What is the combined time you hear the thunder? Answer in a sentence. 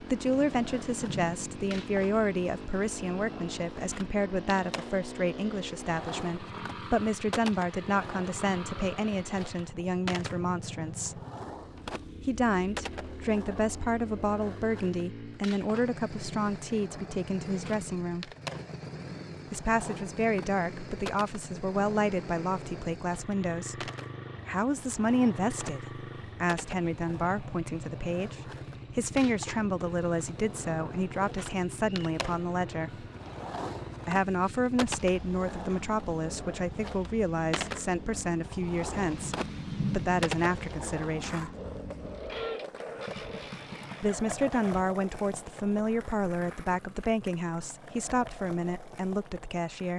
The thunder can be heard for 3 seconds in total.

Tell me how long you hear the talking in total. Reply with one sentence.
The talking can be heard for 44 seconds in total.